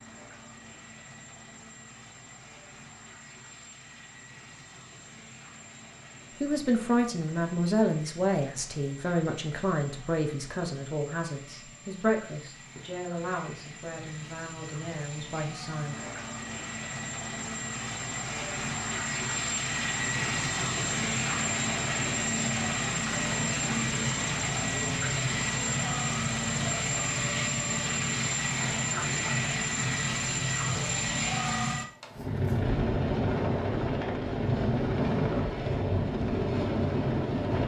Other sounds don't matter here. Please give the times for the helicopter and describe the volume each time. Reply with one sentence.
You can hear the helicopter from 0.0 to 37.6 s, getting louder.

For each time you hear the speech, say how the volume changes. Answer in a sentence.
The speech can be heard from 6.4 to 16.0 s, getting quieter.